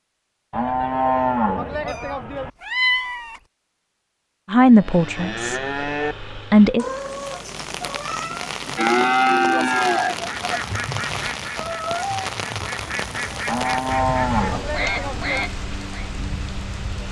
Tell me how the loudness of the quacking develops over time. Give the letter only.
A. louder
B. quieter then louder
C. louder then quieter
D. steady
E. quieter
B.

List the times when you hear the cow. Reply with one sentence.
You can hear the cow from 0.5 to 2.5 s, from 4.6 to 6.2 s, from 8.8 to 10.6 s and from 13.4 to 15.4 s.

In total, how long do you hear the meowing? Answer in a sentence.
You can hear the meowing for 4 seconds altogether.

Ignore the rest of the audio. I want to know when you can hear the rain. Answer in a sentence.
You can hear the rain from 7.0 to 17.0 s.